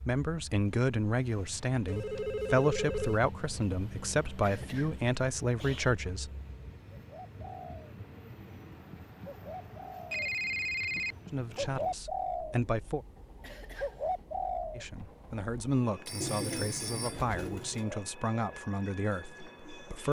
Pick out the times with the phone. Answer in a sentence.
You can hear the phone from 1.9 to 3.2 s, from 10.1 to 11.2 s and from 16.1 to 17.2 s.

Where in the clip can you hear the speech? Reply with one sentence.
You can hear the speech from 0.1 to 6.3 s, from 11.3 to 13.1 s and from 14.8 to 20.0 s.